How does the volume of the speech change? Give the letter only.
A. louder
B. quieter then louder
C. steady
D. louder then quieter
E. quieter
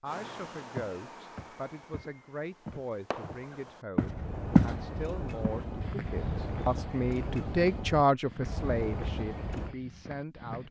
D.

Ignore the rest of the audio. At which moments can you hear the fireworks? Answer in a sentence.
The fireworks can be heard from 0.1 to 9.8 s.